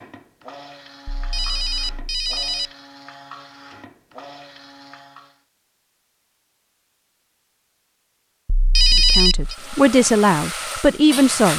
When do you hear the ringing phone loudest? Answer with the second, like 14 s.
9 s.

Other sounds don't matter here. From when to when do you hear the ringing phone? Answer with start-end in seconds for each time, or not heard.
1.1-2.7, 8.4-9.6.